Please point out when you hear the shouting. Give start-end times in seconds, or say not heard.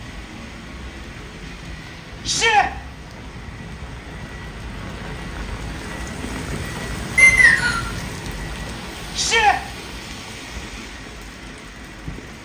2.2-2.7, 9.2-9.6.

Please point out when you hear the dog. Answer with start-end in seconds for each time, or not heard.
not heard.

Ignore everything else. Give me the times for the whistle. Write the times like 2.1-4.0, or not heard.
7.2-7.8.